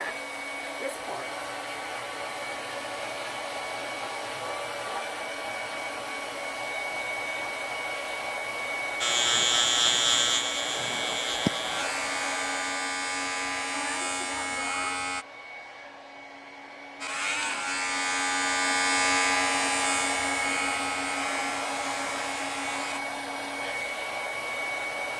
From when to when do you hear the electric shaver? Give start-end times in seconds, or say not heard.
9.0-15.2, 17.0-23.0.